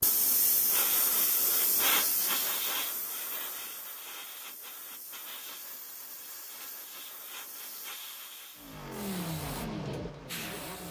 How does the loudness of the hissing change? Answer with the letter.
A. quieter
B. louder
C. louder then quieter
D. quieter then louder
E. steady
A.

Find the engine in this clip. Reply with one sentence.
You can hear the engine from 8.6 to 10.8 s.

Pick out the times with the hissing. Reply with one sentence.
The hissing can be heard from 0.0 to 10.8 s.